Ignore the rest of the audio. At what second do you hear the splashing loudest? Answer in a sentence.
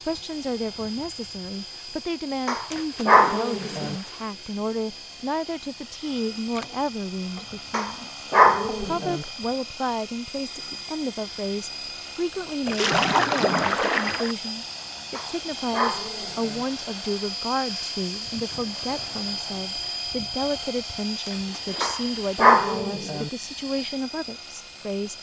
The volume of the splashing peaks at 13 seconds.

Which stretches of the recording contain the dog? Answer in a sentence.
You can hear the dog from 2.5 to 4.0 s, from 7.7 to 9.2 s, from 15.1 to 16.6 s and from 21.8 to 23.3 s.